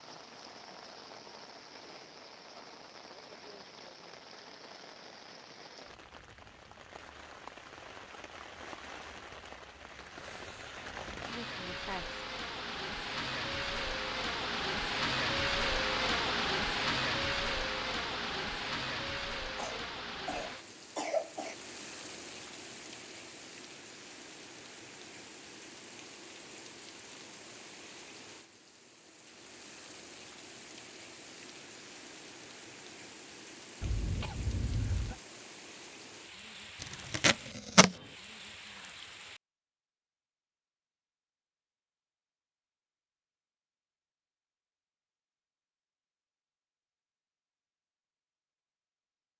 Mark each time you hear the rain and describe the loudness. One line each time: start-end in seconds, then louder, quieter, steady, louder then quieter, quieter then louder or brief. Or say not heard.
0.0-39.4 louder then quieter.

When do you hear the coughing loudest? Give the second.
21 s.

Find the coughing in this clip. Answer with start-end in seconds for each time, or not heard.
11.2-12.2, 19.6-21.6, 33.8-35.2.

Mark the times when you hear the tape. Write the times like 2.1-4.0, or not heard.
36.8-38.0.